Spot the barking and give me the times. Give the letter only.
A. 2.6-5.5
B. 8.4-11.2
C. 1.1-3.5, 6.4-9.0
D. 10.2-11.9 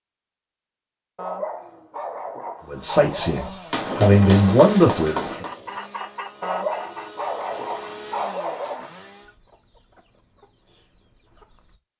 C.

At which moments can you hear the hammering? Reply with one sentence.
The hammering can be heard from 3.7 to 5.5 s.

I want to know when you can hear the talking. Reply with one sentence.
You can hear the talking from 2.6 to 5.5 s.